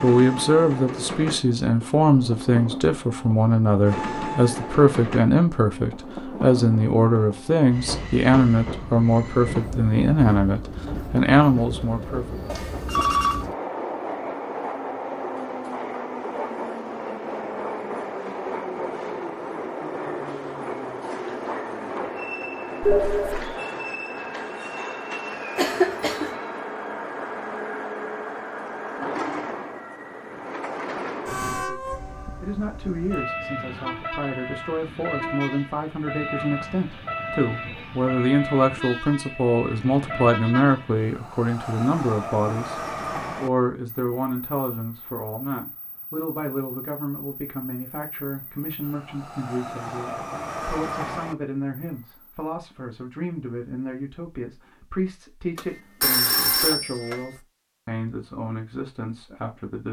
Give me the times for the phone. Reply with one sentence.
You can hear the phone from 12.4 to 13.4 s, from 22.8 to 23.6 s and from 55.5 to 57.2 s.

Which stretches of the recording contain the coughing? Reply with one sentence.
You can hear the coughing from 25.6 to 26.4 s.